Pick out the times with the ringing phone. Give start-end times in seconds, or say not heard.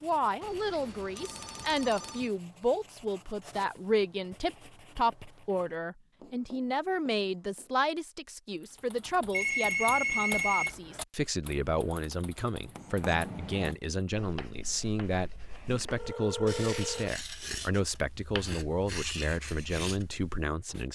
0.4-2.3, 9.3-10.8, 15.8-17.1.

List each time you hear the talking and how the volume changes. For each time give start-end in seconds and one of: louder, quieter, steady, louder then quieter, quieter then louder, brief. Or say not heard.
0.0-20.9 steady.